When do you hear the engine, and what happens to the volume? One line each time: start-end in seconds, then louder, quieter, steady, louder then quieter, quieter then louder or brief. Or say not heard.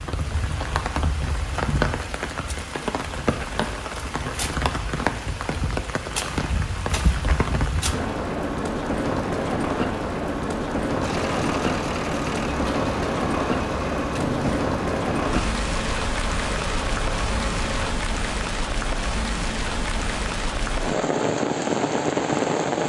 11.0-17.9 steady.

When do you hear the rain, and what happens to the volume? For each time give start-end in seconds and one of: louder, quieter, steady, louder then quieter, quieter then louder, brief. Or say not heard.
0.0-22.8 steady.